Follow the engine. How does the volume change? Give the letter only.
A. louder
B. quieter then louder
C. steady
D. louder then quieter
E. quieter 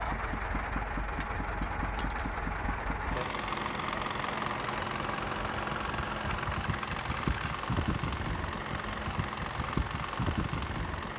C.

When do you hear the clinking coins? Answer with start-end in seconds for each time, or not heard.
1.6-2.5, 6.2-7.6.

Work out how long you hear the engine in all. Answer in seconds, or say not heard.
11 s.